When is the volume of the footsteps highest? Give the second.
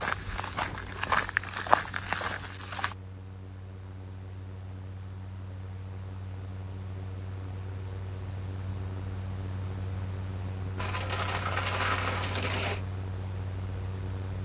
2 s.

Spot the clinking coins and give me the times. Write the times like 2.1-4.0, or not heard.
10.8-12.8.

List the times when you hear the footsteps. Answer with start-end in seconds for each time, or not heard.
0.0-3.0.